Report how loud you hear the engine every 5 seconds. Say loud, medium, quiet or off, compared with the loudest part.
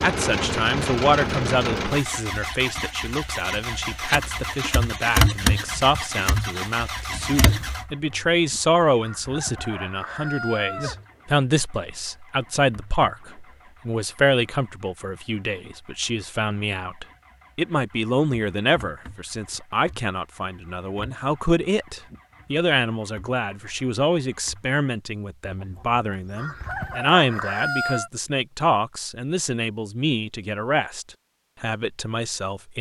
loud, loud, quiet, quiet, quiet, off, off.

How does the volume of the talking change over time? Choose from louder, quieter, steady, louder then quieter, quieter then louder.
steady.